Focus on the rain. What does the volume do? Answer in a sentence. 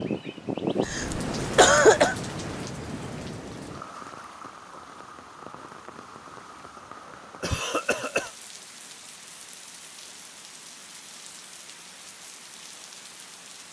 The loudness of the rain goes down.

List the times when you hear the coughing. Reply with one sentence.
You can hear the coughing from 0.8 to 2.1 s and from 7.4 to 8.3 s.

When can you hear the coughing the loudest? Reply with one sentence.
The loudest moment of the coughing is at 2 seconds.